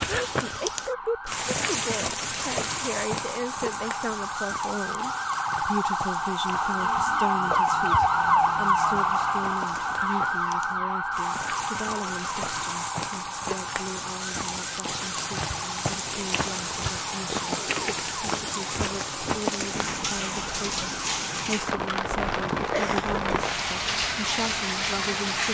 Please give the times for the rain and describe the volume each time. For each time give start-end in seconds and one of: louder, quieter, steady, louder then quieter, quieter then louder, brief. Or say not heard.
0.0-25.4 quieter then louder.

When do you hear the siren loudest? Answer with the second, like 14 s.
8 s.